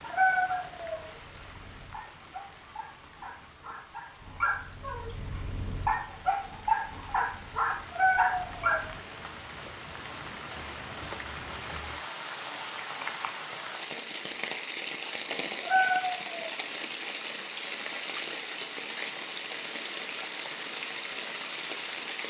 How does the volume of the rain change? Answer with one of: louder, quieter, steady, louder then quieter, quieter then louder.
louder.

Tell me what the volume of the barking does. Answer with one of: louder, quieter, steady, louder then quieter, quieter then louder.
louder.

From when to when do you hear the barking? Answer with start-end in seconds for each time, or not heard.
0.0-8.9.